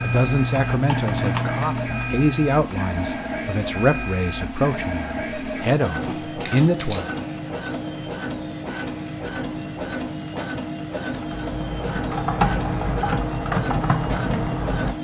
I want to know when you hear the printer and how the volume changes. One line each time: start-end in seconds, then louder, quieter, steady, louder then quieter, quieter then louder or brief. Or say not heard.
0.0-14.9 steady.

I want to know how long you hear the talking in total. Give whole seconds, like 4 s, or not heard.
7 s.